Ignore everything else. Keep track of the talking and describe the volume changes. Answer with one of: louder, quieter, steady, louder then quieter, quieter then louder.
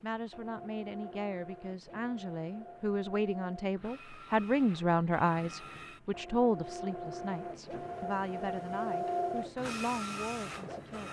louder then quieter.